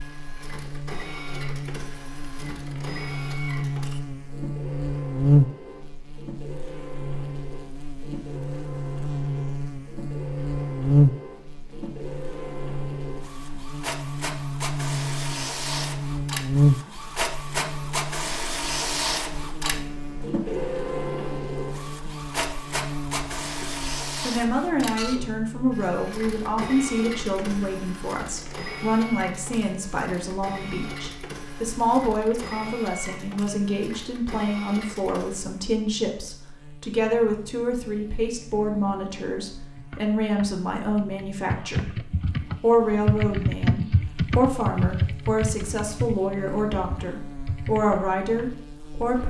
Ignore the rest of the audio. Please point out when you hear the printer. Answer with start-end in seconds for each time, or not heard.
0.0-35.6.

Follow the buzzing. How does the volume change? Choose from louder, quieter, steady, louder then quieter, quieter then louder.
quieter.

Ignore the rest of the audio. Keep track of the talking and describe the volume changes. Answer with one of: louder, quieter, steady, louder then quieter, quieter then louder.
steady.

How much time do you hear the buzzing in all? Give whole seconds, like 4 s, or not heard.
49 s.